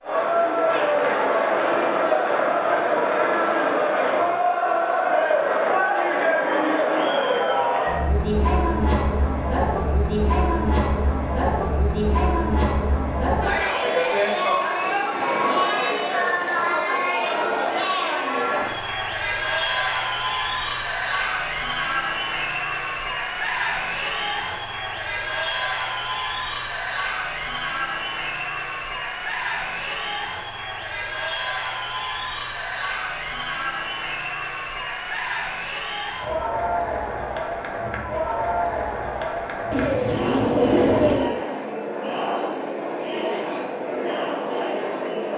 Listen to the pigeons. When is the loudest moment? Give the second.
41 s.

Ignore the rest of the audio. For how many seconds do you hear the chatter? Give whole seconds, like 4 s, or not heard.
45 s.